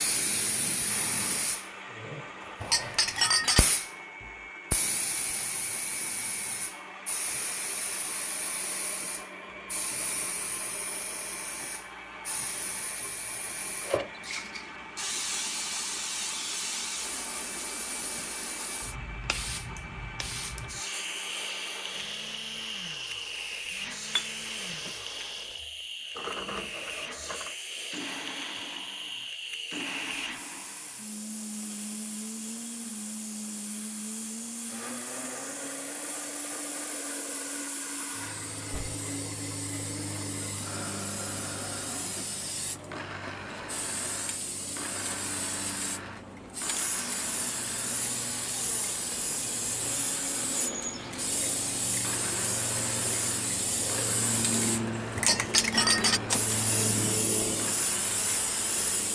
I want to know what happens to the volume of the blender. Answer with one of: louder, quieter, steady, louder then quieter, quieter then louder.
steady.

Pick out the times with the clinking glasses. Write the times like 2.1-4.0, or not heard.
2.6-3.7, 24.1-24.9, 55.1-56.3.